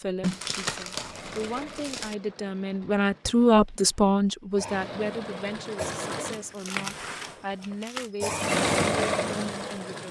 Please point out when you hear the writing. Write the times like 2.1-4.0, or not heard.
not heard.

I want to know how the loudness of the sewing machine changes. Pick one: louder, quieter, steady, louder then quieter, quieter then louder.
quieter then louder.